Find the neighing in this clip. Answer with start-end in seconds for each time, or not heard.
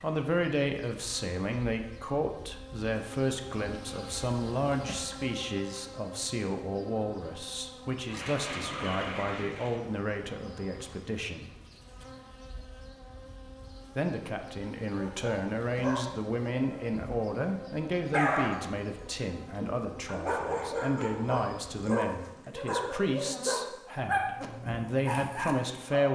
8.1-9.8.